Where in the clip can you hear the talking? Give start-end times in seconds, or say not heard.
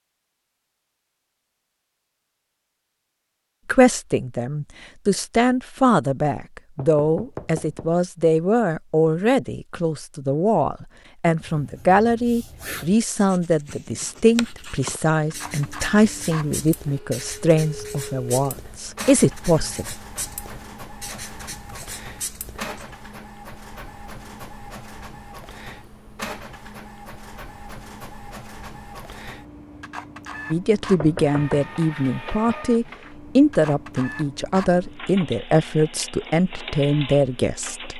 3.6-19.9, 30.5-37.9.